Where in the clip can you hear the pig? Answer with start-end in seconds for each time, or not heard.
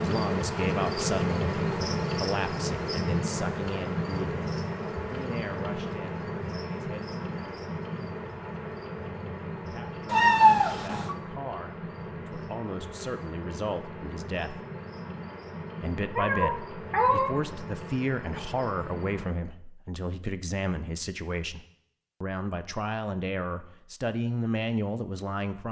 not heard.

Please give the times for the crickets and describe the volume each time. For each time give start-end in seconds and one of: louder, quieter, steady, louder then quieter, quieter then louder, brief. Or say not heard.
0.0-19.4 quieter.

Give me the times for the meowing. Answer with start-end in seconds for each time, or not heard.
10.1-11.2, 16.1-17.3.